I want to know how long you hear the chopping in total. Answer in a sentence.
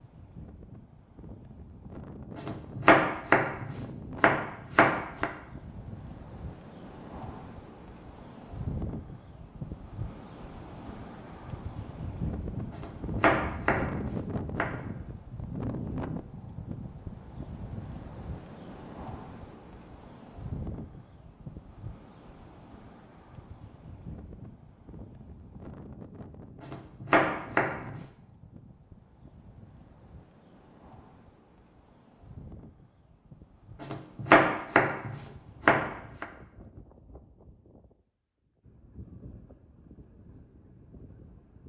The chopping can be heard for 9 seconds in total.